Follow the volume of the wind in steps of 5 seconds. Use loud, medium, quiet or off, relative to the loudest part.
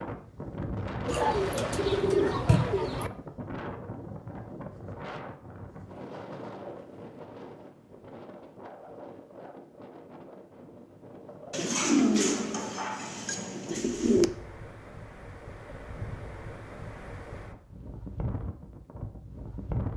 loud, medium, medium, loud.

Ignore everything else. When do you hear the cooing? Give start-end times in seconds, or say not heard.
1.1-3.1, 11.5-14.2.